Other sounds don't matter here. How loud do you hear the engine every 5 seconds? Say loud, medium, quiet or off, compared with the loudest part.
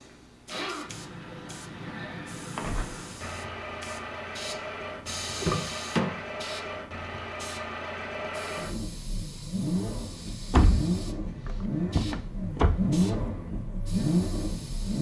medium, medium, loud.